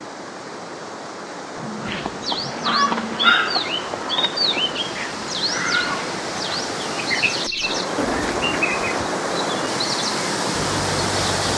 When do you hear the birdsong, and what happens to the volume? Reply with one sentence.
The birdsong can be heard from 1.9 to 11.5 s, getting quieter.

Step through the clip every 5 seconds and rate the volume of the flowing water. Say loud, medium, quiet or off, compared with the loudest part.
medium, loud, loud.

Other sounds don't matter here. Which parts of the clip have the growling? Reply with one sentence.
You can hear the growling from 1.6 to 3.4 s and from 8.0 to 8.7 s.